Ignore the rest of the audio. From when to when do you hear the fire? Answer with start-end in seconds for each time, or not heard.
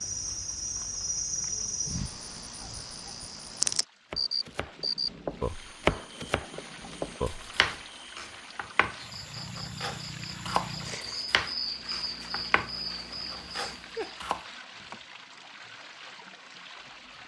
not heard.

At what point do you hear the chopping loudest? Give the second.
6 s.